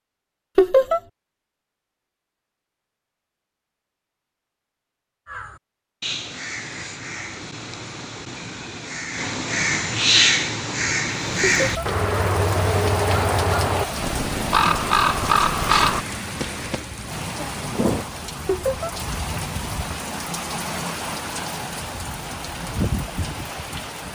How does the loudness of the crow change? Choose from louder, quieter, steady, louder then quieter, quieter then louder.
louder.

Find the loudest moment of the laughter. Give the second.
1 s.